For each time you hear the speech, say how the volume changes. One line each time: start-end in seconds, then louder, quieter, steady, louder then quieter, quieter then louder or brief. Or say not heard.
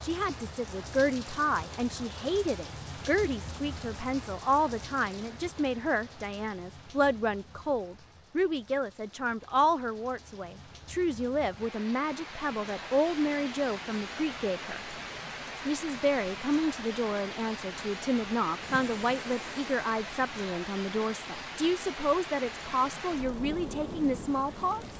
0.0-14.8 steady
15.7-24.9 steady.